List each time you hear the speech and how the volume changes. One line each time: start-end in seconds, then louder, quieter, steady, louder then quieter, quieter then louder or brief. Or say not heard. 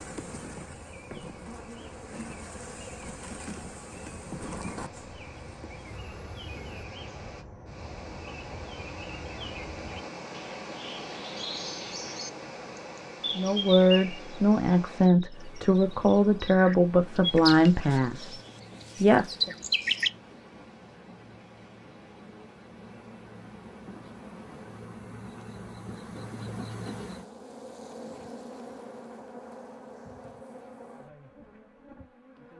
13.3-18.4 steady
19.0-19.5 brief.